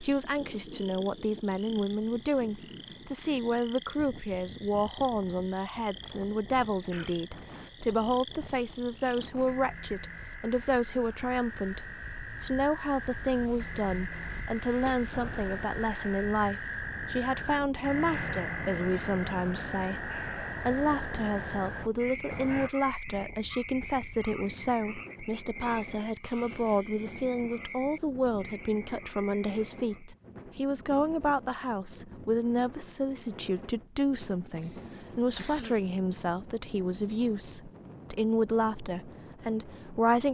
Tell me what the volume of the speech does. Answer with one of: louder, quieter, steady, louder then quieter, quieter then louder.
steady.